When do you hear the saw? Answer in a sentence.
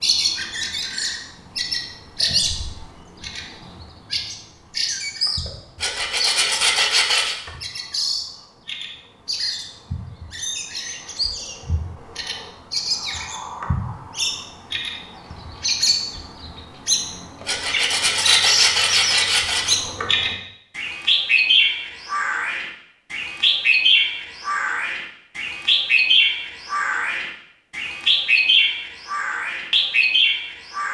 You can hear the saw from 5.8 to 7.3 s and from 17.4 to 19.8 s.